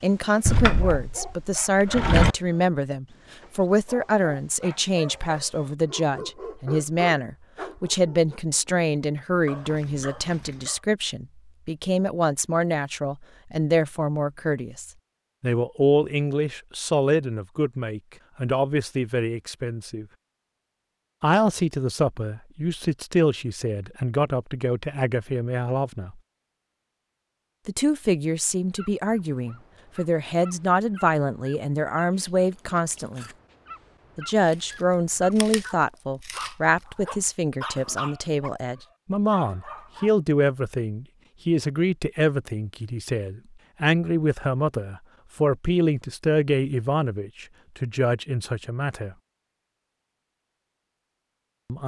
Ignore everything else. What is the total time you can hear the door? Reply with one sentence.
You can hear the door for 2 seconds altogether.